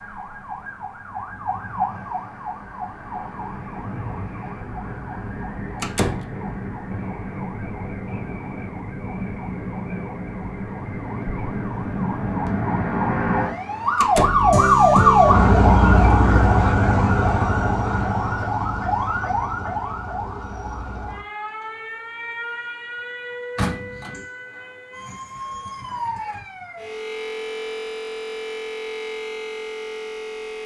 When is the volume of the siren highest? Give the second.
15 s.